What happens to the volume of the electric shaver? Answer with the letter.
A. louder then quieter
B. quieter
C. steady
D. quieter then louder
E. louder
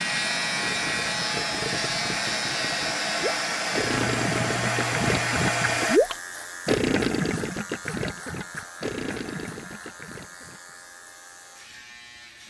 B.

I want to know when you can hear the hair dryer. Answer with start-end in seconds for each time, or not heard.
0.0-6.0.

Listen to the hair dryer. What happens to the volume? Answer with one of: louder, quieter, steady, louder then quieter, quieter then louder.
louder.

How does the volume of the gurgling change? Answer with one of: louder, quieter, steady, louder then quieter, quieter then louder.
louder then quieter.